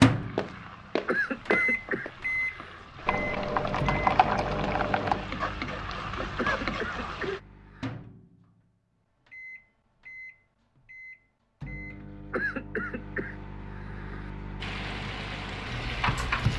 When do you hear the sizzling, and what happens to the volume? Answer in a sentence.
You can hear the sizzling from 0.0 to 7.4 s, getting louder; and briefly from 14.6 to 16.5 s.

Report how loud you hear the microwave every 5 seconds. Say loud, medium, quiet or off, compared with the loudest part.
loud, quiet, quiet, medium.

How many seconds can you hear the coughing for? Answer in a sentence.
You can hear the coughing for 5 seconds altogether.